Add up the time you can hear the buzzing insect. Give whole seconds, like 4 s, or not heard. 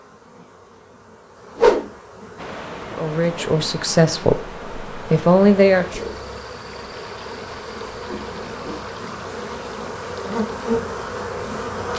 12 s.